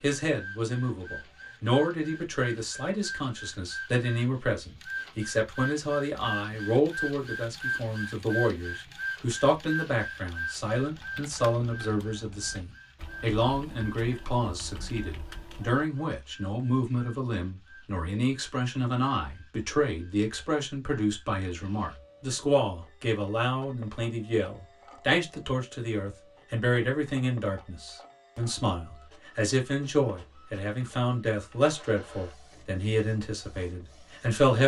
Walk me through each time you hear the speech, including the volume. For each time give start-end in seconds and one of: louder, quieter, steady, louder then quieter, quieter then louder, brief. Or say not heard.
0.0-34.6 steady.